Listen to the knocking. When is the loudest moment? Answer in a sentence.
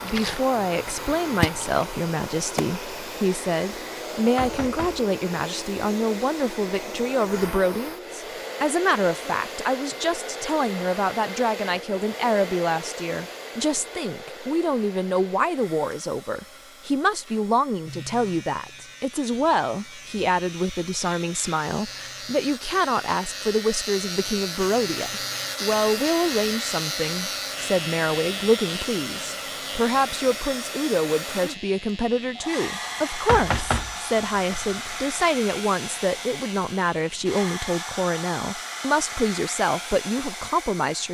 The volume of the knocking peaks at 34 seconds.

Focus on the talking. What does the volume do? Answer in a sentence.
The volume of the talking stays about the same.